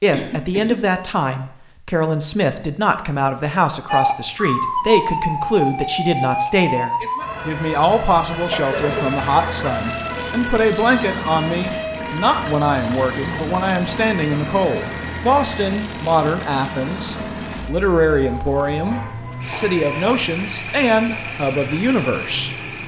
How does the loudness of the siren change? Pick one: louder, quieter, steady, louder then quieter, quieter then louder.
quieter.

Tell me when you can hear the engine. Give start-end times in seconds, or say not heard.
8.7-22.8.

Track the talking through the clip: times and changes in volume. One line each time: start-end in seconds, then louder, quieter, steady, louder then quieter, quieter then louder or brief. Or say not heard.
0.0-22.5 steady.